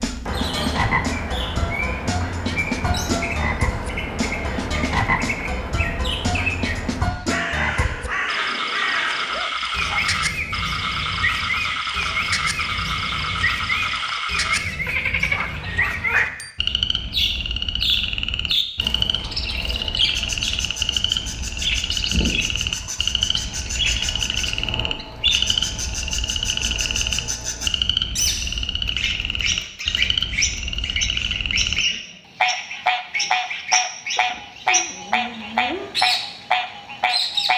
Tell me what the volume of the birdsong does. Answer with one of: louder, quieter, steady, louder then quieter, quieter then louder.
steady.